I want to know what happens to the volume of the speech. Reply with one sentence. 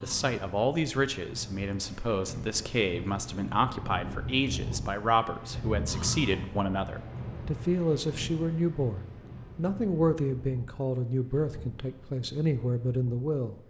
The volume of the speech stays about the same.